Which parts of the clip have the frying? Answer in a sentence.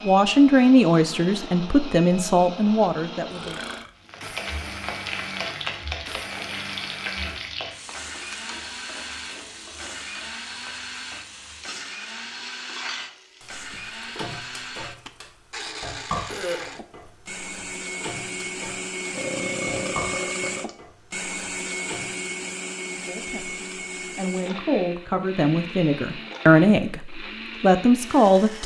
You can hear the frying from 4.0 to 22.2 s.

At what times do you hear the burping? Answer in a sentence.
The burping can be heard from 3.3 to 3.9 s, from 16.2 to 17.1 s and from 19.1 to 20.8 s.